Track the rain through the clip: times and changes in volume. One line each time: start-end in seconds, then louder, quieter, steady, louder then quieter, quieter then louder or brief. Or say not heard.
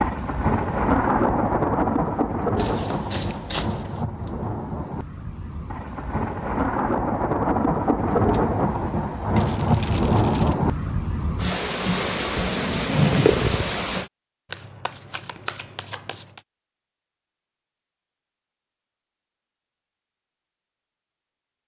0.0-14.1 quieter then louder.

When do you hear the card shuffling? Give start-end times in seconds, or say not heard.
2.5-4.0, 8.1-10.6, 14.5-16.4.